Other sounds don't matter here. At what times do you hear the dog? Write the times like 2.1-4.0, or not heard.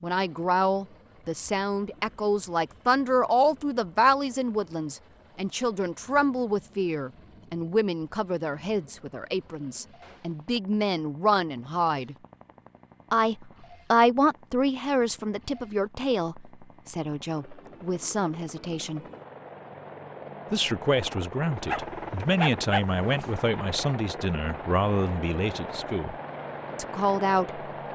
21.6-23.3.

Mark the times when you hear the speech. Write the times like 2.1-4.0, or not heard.
0.0-12.2, 13.1-19.0, 20.5-26.1, 26.8-27.6.